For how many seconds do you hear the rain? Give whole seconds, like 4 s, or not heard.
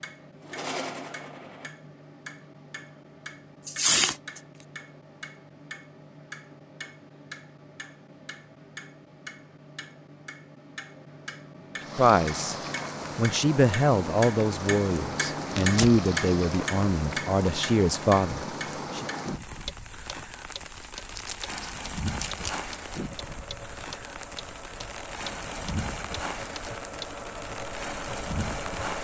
17 s.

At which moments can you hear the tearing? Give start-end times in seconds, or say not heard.
3.6-4.4, 15.5-16.0, 20.8-22.6.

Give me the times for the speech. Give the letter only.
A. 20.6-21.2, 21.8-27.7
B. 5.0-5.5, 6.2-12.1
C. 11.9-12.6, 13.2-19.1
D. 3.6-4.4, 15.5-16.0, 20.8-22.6
C.